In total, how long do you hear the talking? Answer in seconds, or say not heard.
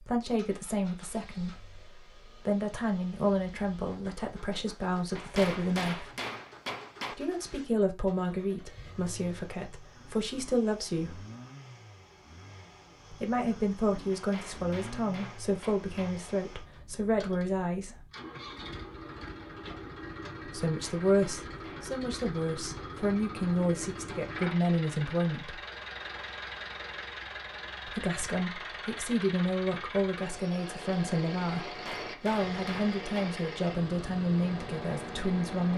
28 s.